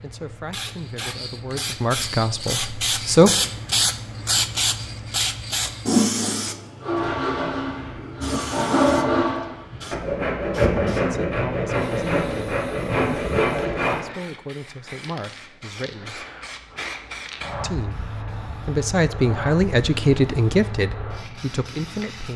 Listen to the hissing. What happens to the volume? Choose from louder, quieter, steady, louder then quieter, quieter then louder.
quieter then louder.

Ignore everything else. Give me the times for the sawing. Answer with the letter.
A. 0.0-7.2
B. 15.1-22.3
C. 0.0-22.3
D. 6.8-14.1
D.